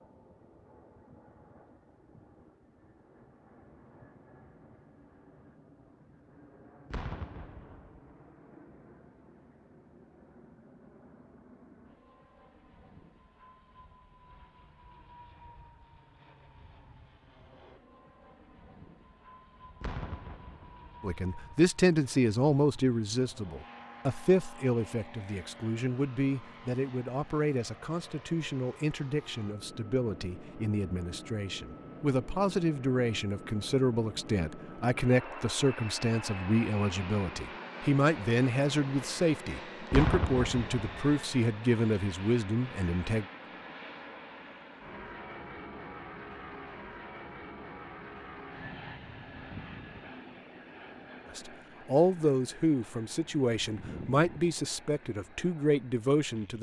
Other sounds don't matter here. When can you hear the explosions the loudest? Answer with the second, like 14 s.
40 s.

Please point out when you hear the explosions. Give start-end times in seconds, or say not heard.
6.9-8.2, 19.8-21.1, 39.9-41.1.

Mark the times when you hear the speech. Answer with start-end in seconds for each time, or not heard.
21.0-43.2, 51.3-56.5.